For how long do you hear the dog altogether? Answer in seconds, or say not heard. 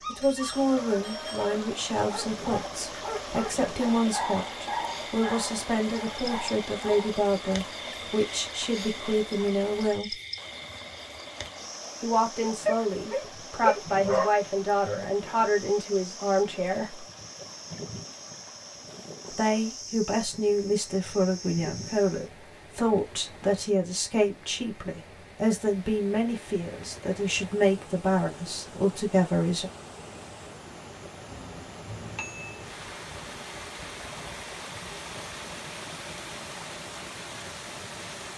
9 s.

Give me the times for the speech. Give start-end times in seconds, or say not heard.
0.1-10.2, 12.0-17.1, 19.3-29.7.